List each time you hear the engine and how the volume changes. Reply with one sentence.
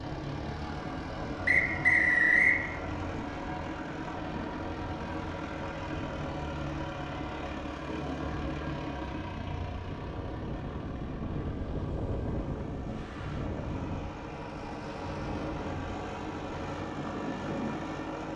The engine can be heard from 0.0 to 18.3 s, getting quieter then louder.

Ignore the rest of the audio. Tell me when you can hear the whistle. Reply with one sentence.
The whistle can be heard from 1.4 to 2.6 s.